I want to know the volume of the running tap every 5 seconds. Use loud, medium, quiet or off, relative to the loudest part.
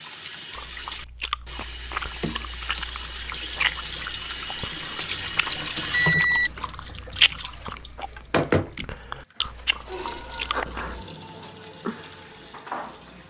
medium, loud, medium.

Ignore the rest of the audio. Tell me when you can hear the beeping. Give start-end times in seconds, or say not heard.
5.0-6.5.